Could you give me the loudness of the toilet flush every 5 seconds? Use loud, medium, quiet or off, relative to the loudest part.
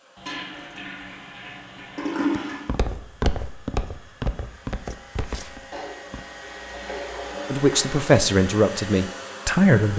loud, medium.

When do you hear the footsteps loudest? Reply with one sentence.
The volume of the footsteps peaks at 3 seconds.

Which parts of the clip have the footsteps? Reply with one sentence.
The footsteps can be heard from 2.3 to 6.2 s.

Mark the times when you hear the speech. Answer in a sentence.
The speech can be heard from 7.5 to 9.9 s.